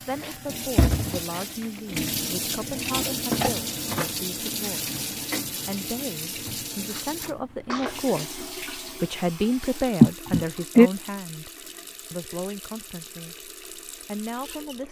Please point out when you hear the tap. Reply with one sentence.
The tap can be heard from 0.0 to 14.8 s.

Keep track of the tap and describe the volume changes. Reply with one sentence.
The volume of the tap goes down.